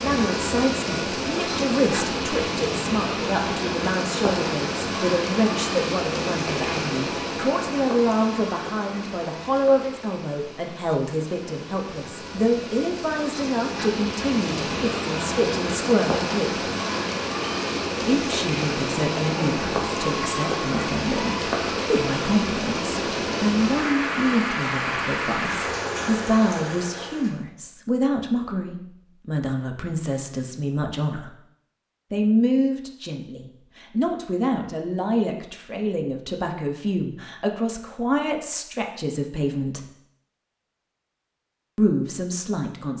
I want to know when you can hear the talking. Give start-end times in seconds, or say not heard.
0.0-16.6, 18.0-31.3, 32.1-39.9, 41.8-42.9.